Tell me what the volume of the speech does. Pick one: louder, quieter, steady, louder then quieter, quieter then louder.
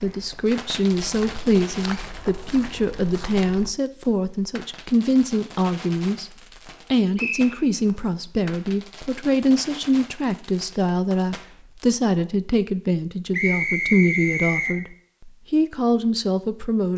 steady.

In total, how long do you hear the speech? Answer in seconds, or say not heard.
16 s.